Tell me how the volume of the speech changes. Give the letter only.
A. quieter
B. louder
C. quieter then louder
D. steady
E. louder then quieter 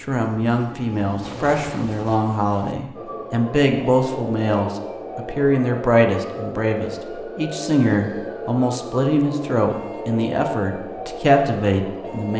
D.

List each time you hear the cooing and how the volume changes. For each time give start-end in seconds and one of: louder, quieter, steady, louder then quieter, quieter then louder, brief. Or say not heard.
not heard.